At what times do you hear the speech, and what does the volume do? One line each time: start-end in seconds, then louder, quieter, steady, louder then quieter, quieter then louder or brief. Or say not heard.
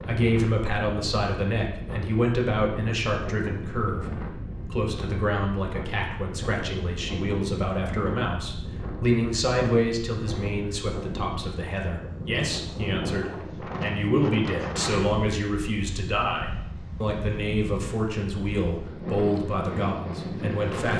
0.1-20.9 steady.